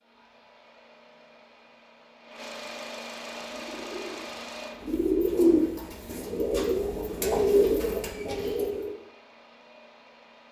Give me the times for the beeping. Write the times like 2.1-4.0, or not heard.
not heard.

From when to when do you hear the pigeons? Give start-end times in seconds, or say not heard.
3.5-8.9.